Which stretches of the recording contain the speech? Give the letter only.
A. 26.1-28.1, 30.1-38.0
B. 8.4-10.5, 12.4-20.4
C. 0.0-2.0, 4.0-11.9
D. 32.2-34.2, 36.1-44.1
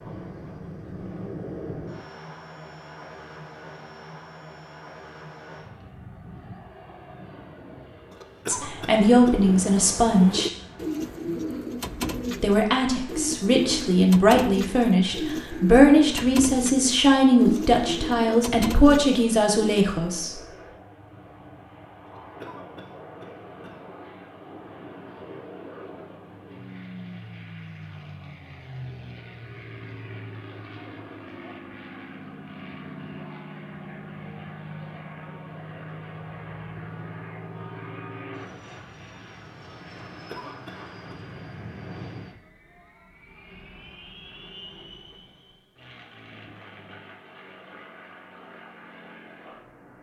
B.